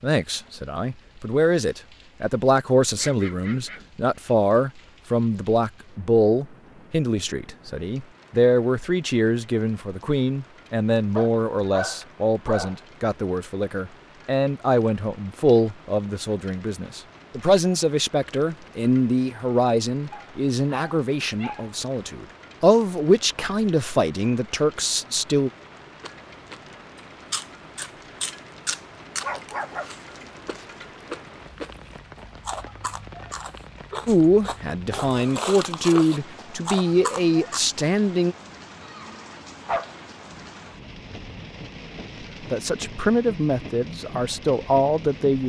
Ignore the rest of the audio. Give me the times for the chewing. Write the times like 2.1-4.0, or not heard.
26.0-37.6.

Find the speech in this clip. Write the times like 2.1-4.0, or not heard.
0.0-25.5, 34.0-38.4, 42.5-45.4.